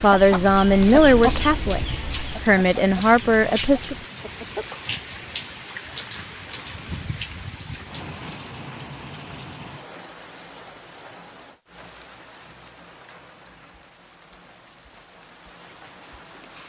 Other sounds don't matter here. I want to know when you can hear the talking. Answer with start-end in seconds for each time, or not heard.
0.0-4.0.